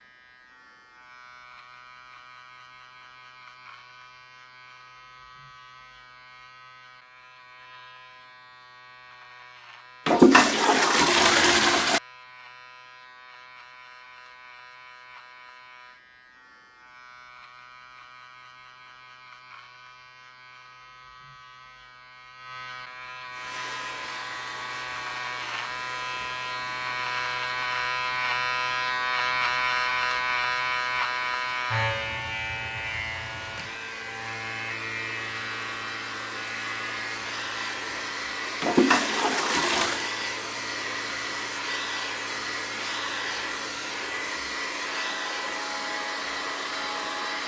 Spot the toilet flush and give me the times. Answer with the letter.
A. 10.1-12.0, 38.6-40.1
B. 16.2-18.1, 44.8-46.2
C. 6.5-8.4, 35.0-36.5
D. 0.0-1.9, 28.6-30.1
A.